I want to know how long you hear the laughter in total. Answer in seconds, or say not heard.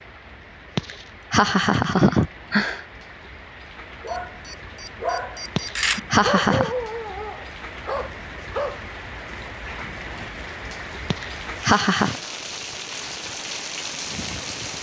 4 s.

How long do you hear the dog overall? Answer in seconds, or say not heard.
5 s.